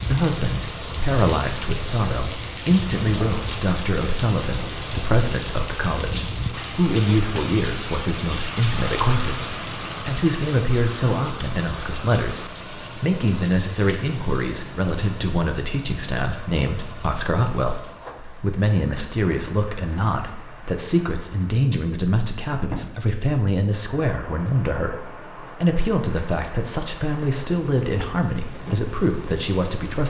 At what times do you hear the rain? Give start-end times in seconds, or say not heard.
0.0-30.0.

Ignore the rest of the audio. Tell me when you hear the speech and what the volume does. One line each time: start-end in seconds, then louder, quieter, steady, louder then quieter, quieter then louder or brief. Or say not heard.
0.0-30.0 steady.